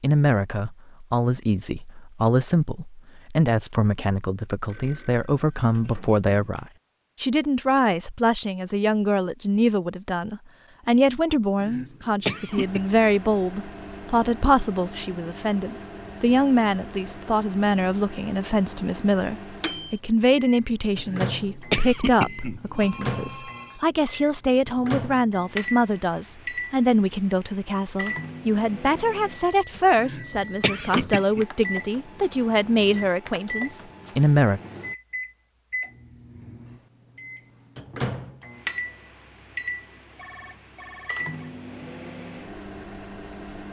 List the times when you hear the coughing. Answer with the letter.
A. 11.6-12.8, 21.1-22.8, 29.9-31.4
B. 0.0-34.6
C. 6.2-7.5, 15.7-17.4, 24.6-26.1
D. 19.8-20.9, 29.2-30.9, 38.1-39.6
A.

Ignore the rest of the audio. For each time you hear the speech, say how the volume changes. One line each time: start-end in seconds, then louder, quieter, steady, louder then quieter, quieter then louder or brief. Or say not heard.
0.0-34.6 steady.